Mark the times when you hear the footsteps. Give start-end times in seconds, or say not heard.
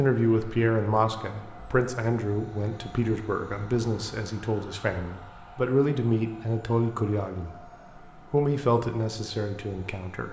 not heard.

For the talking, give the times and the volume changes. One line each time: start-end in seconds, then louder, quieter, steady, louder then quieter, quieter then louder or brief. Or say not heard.
0.0-10.2 steady.